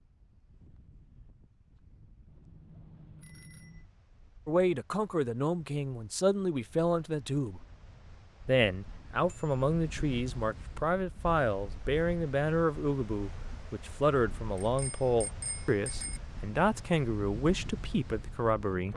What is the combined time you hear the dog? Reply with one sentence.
You can't hear the dog here.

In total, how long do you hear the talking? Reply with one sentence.
The talking can be heard for 14 seconds in total.